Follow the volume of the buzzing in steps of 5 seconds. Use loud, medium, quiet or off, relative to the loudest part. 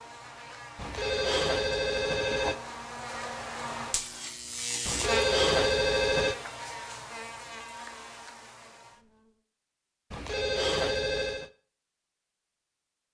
loud, loud, off.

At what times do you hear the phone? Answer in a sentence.
The phone can be heard from 0.8 to 2.5 s, from 4.8 to 6.3 s and from 10.1 to 11.5 s.